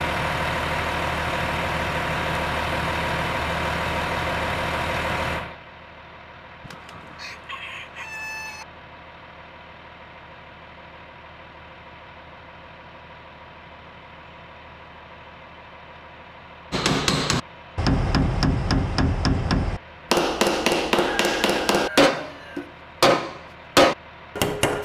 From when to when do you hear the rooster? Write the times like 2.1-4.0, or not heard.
6.6-8.7, 21.0-22.7.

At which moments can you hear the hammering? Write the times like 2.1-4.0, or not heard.
16.7-24.8.